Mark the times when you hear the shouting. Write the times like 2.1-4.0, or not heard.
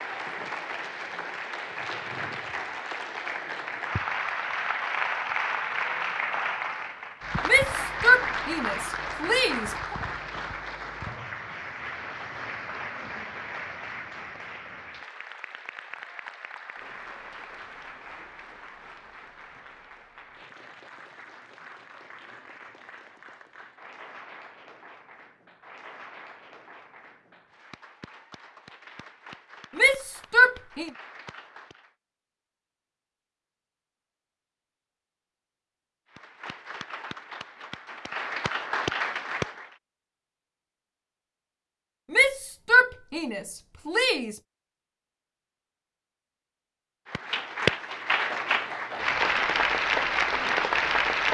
7.5-9.9, 29.8-30.9, 42.1-44.4.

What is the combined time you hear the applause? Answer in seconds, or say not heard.
40 s.